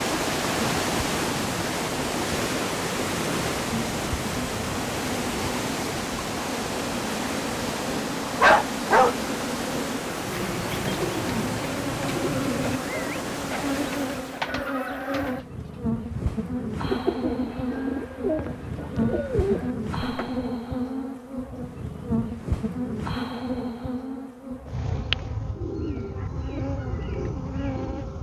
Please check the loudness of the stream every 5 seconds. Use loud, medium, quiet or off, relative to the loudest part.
loud, loud, medium, off, off, off.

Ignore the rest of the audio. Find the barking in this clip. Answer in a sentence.
You can hear the barking from 8.4 to 9.2 s.